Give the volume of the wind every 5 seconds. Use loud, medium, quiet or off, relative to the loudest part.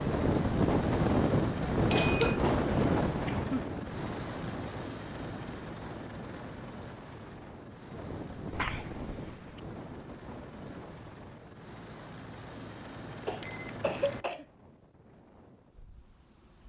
loud, quiet, quiet, quiet.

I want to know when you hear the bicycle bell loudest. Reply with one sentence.
The volume of the bicycle bell peaks at 2 seconds.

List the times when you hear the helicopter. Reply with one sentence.
You can hear the helicopter from 0.0 to 14.2 s.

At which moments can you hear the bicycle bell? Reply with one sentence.
The bicycle bell can be heard from 1.8 to 2.4 s and from 13.4 to 14.2 s.